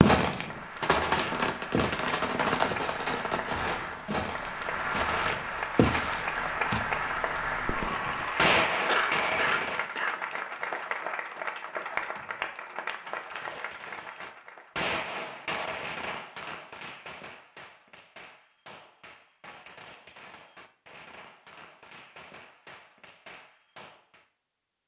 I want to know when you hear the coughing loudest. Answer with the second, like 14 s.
9 s.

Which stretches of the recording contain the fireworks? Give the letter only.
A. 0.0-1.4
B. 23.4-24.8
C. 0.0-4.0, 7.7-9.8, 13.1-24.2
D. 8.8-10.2
C.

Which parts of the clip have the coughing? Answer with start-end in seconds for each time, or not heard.
8.8-10.2.